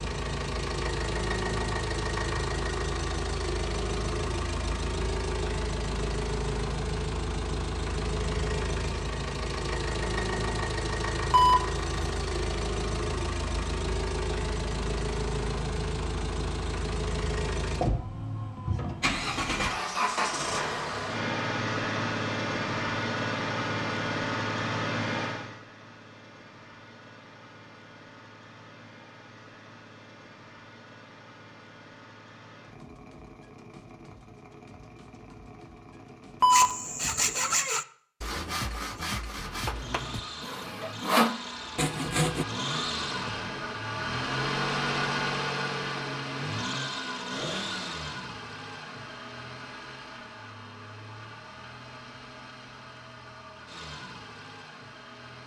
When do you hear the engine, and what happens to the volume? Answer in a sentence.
You can hear the engine from 0.0 to 37.6 s, getting quieter; and from 39.4 to 55.4 s, getting louder then quieter.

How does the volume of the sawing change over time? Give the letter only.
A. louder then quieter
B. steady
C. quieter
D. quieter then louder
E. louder
D.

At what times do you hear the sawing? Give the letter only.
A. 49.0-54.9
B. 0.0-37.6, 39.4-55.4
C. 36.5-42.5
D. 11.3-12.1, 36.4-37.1
C.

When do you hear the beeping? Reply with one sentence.
You can hear the beeping from 11.3 to 12.1 s and from 36.4 to 37.1 s.